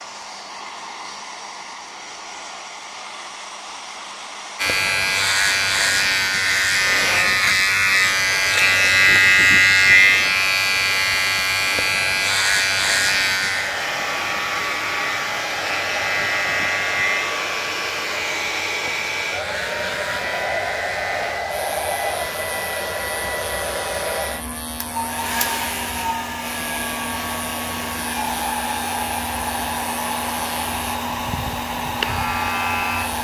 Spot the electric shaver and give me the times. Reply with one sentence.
The electric shaver can be heard from 4.5 to 33.1 s.